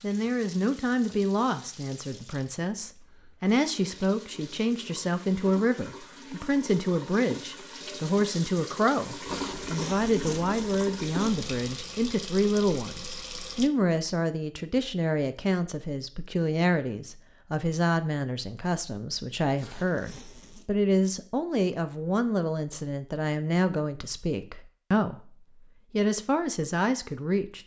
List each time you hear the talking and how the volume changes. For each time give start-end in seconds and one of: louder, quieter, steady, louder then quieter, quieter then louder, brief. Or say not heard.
0.0-27.6 steady.